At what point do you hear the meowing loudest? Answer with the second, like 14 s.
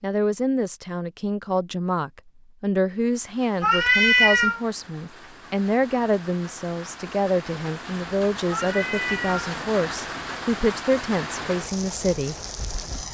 4 s.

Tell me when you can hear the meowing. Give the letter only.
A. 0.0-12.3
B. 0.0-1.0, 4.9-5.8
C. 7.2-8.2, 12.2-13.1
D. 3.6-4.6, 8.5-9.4
D.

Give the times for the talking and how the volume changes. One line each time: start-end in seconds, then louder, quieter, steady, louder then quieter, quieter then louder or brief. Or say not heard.
0.0-12.3 steady.